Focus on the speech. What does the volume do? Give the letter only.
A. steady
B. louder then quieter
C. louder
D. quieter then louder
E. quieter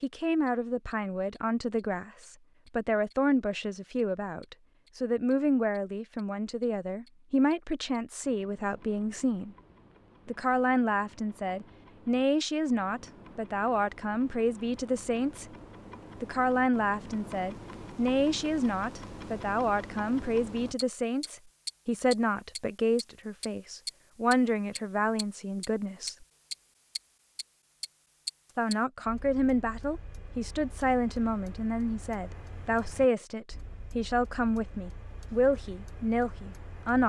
A.